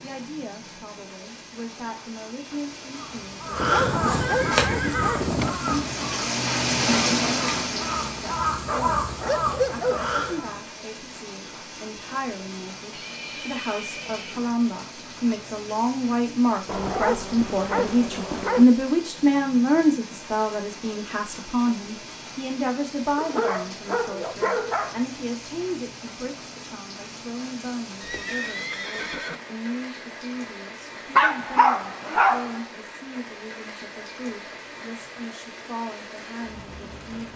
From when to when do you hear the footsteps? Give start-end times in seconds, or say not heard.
not heard.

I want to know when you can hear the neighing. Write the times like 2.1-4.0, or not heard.
4.2-5.3, 12.9-14.4, 28.0-29.4.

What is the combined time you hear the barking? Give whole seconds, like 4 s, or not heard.
9 s.